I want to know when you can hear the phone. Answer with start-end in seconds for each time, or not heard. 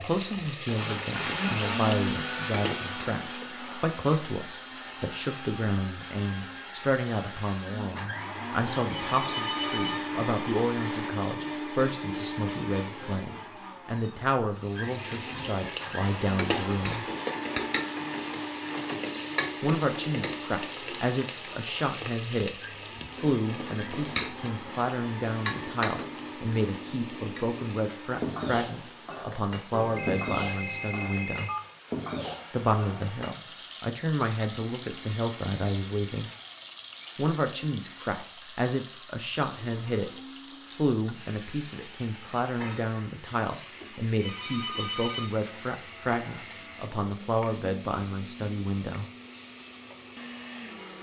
8.9-10.1, 29.7-31.7, 44.1-45.4.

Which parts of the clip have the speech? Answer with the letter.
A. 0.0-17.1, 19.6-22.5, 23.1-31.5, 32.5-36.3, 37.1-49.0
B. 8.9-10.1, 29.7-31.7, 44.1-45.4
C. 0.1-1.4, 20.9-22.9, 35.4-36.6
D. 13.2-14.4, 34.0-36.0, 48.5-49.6
A.